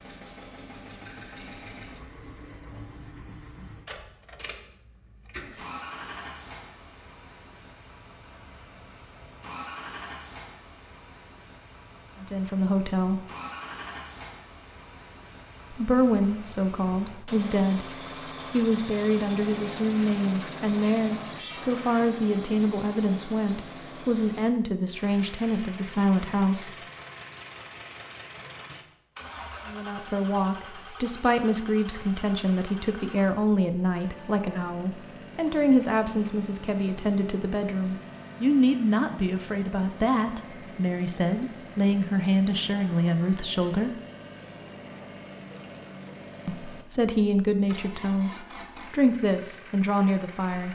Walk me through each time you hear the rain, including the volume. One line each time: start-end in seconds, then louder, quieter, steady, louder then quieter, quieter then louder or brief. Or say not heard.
not heard.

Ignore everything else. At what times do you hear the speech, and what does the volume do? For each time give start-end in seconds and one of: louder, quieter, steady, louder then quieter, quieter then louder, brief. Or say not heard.
12.2-13.2 brief
15.7-26.7 steady
29.6-43.9 steady
46.5-50.7 quieter then louder.